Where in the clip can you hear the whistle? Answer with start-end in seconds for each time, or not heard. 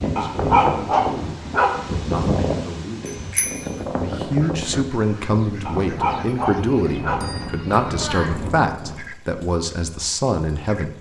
not heard.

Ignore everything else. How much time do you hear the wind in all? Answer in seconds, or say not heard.
9 s.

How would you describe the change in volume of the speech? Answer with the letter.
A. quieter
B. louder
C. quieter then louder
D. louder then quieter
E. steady
B.